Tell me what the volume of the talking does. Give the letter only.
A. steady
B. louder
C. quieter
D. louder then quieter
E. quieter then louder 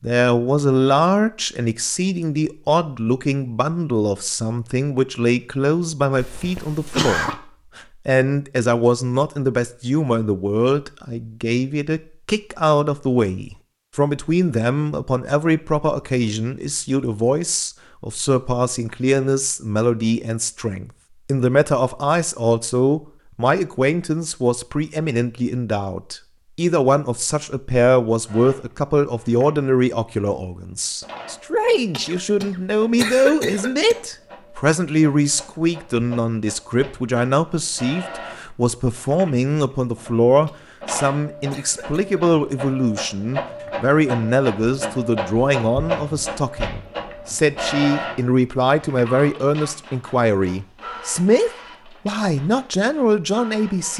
A.